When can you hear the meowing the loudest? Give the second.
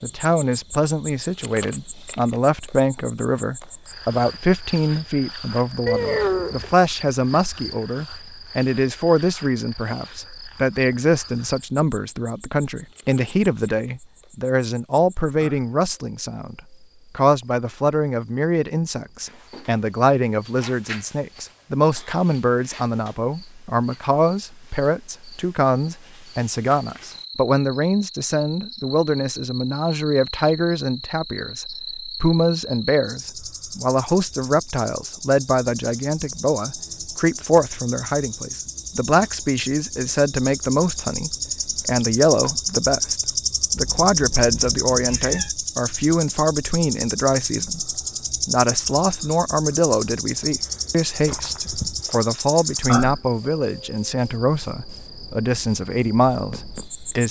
6 s.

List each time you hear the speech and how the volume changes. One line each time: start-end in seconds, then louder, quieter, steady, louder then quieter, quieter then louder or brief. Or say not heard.
0.0-57.2 steady.